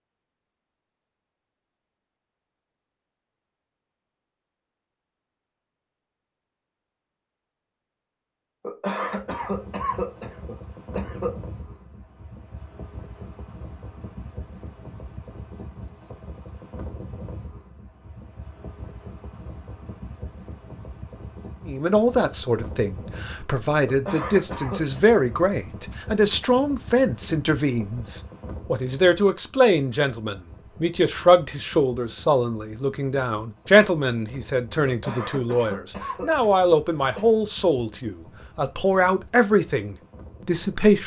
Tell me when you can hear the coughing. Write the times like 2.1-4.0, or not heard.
8.6-11.3, 23.9-25.0, 34.9-37.3.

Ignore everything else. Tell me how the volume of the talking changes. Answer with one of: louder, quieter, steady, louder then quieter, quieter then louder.
steady.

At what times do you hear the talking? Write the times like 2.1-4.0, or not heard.
21.6-41.0.